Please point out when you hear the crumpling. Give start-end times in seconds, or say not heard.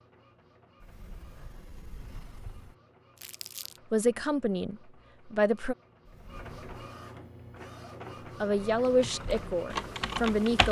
3.1-3.8.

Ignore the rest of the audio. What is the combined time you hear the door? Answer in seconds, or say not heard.
3 s.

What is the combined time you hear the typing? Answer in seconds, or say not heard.
2 s.